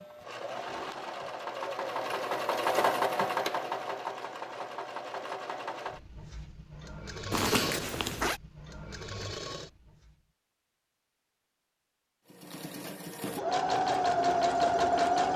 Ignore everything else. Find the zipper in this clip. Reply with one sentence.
You can hear the zipper from 7.3 to 8.4 s.